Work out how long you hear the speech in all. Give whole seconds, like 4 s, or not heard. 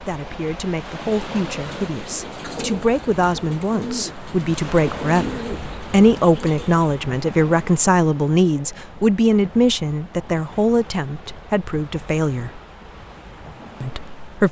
13 s.